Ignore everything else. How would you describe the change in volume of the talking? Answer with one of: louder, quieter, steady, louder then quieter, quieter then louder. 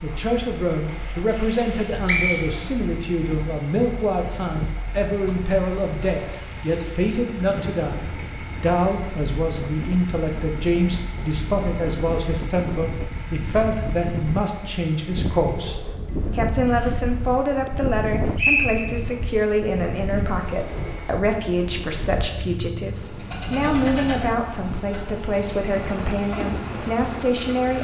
steady.